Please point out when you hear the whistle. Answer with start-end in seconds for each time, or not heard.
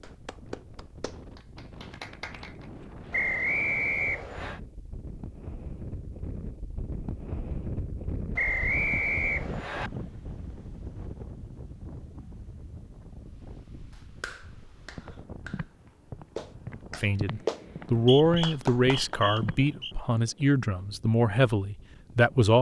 3.1-4.6, 8.3-9.9, 17.9-19.9.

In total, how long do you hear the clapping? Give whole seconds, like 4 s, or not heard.
8 s.